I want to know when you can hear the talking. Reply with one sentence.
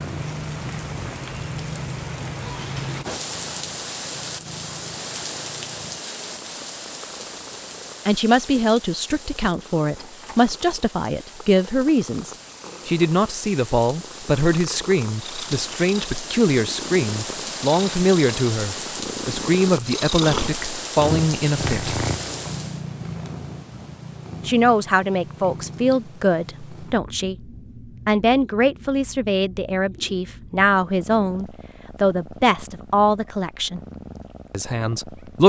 You can hear the talking from 8.1 to 22.1 s, from 24.4 to 33.8 s and from 34.5 to 35.4 s.